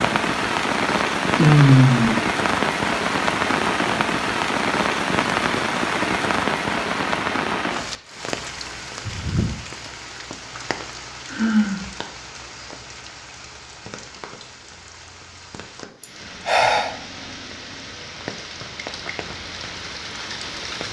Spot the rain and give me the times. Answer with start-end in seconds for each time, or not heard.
0.0-20.8.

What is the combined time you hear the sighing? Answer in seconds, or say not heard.
2 s.